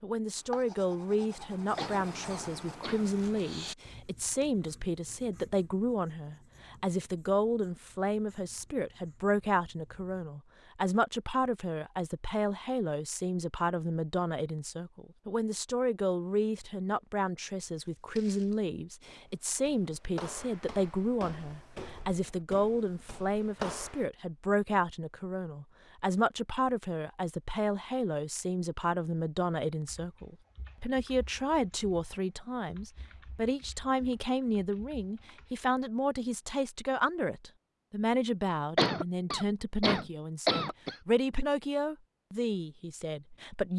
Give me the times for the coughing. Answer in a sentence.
The coughing can be heard from 1.8 to 3.0 s and from 38.8 to 41.0 s.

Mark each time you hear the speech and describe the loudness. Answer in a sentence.
You can hear the speech from 0.0 to 43.7 s, at a steady volume.